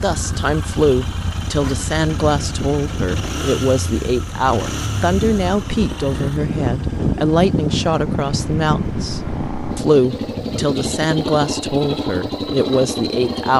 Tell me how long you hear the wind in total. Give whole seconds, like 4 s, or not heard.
11 s.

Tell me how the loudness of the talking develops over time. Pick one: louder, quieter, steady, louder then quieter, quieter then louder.
steady.